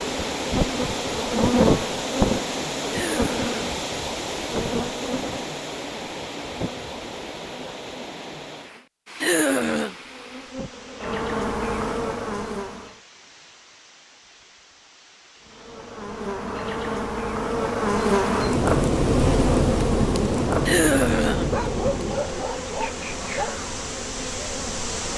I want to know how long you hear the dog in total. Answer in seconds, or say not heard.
2 s.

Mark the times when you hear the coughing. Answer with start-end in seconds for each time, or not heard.
2.9-3.7, 9.2-9.9, 20.6-21.6.